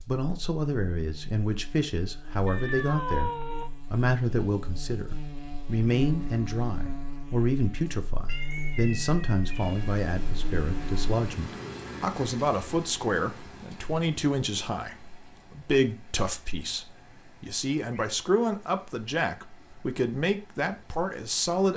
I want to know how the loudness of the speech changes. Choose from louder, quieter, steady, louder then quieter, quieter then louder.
steady.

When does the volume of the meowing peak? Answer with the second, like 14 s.
3 s.